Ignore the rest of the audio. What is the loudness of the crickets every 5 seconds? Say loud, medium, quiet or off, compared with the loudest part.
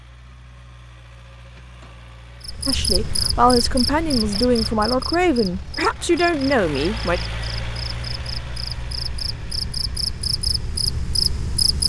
loud, medium, loud.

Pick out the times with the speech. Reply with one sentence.
The speech can be heard from 2.6 to 7.2 s.